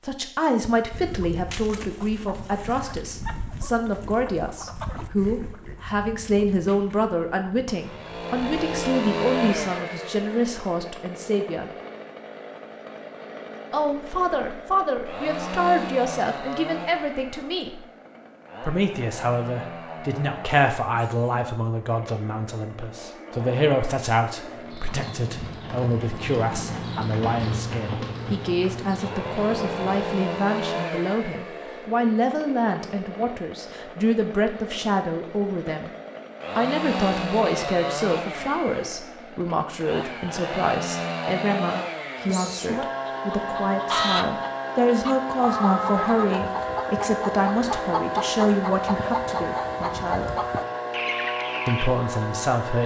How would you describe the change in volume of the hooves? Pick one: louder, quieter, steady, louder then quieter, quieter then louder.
louder then quieter.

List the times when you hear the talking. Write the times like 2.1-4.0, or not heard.
0.0-11.7, 13.7-17.8, 18.6-35.9, 36.5-50.3, 51.6-52.8.